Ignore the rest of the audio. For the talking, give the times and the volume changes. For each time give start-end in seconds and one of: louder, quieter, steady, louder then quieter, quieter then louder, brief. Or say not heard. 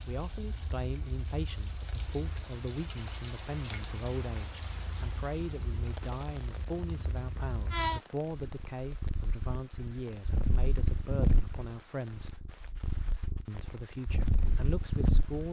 0.1-12.4 steady
13.4-15.4 brief.